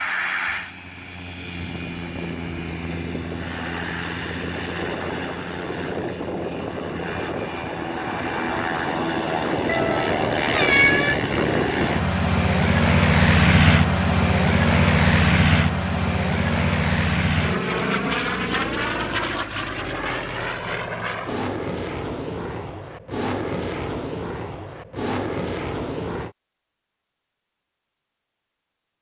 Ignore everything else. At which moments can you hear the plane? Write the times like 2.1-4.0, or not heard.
0.0-26.4.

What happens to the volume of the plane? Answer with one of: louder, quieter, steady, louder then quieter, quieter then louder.
louder then quieter.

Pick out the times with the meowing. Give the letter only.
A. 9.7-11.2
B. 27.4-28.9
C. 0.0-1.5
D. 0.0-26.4
A.